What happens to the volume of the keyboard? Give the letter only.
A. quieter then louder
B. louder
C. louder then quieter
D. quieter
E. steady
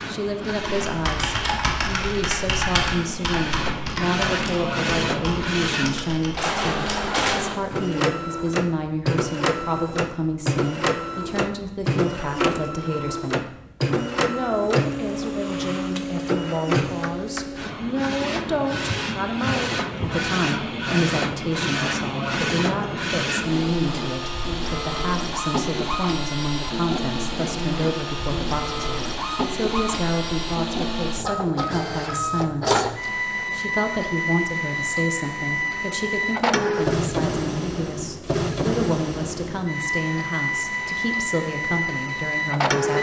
D.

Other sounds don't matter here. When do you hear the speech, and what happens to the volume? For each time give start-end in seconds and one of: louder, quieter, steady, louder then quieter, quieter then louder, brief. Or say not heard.
0.1-42.9 steady.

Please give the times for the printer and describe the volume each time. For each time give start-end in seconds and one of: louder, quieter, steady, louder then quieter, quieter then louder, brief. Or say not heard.
0.0-42.9 steady.